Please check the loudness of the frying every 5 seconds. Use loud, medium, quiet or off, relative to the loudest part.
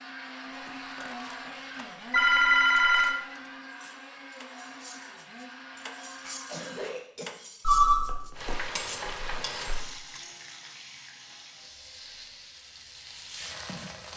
off, loud, medium.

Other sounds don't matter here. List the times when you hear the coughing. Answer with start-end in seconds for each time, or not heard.
6.2-7.3.